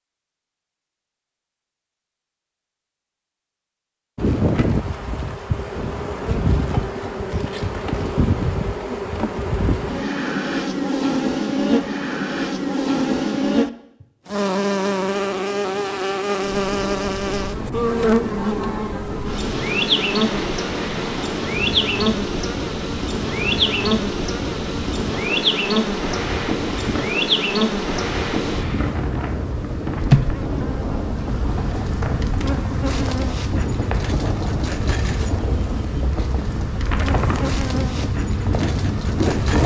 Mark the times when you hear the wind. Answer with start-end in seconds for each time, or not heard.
16.4-39.6.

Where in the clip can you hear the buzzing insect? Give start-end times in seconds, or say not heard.
4.2-39.6.